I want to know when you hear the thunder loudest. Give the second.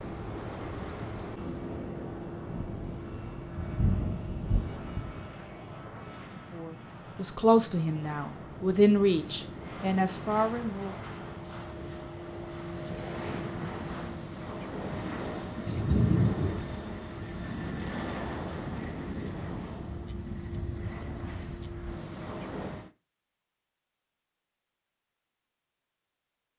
16 s.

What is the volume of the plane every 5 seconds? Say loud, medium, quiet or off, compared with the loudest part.
loud, medium, loud, loud, loud, off.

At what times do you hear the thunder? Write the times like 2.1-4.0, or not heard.
2.4-5.2, 15.7-16.6.